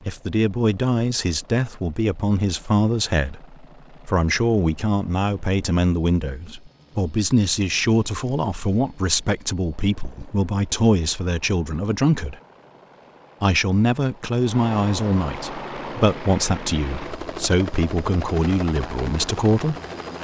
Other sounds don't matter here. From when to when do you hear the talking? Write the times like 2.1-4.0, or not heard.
0.1-12.3, 13.4-19.8.